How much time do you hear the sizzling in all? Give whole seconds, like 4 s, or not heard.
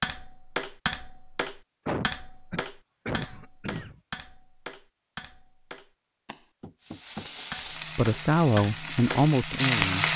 3 s.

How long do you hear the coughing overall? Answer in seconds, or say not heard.
2 s.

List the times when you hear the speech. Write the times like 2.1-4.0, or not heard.
8.0-10.1.